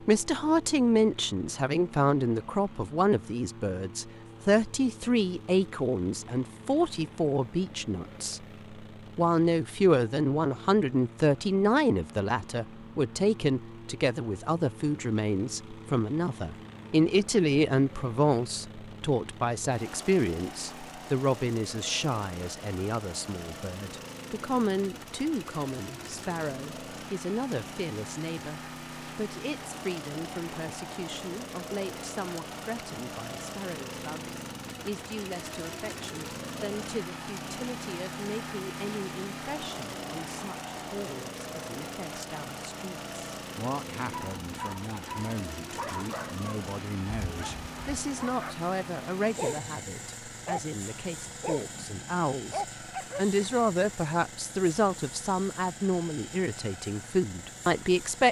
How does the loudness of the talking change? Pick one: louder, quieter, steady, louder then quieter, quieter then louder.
quieter then louder.